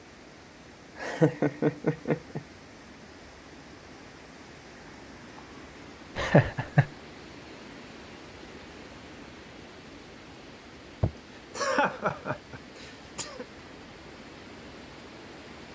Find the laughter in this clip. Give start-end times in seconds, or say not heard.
0.9-2.4, 6.2-6.9, 11.0-13.4.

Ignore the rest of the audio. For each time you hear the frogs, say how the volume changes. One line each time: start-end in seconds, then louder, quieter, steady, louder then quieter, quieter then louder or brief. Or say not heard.
not heard.